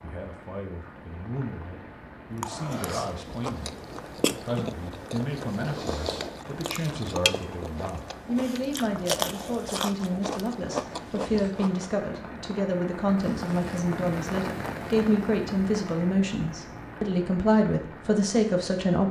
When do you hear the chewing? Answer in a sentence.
The chewing can be heard from 2.4 to 11.9 s.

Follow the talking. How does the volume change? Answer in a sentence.
The volume of the talking goes up.